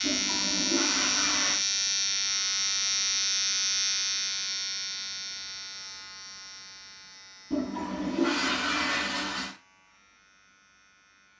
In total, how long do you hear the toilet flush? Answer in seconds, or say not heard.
4 s.